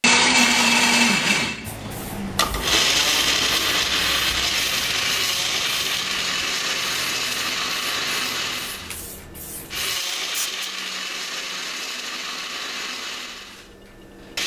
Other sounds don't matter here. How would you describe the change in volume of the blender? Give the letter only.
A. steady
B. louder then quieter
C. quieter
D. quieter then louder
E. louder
C.